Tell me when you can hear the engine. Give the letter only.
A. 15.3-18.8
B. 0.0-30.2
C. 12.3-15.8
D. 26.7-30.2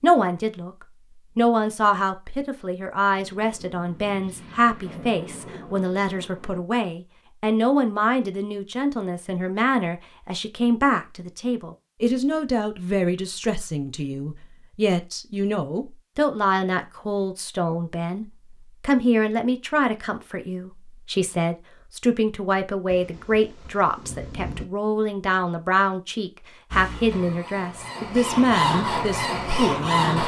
D.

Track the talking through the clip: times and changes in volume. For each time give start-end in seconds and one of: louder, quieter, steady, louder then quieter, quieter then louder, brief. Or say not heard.
0.0-30.2 steady.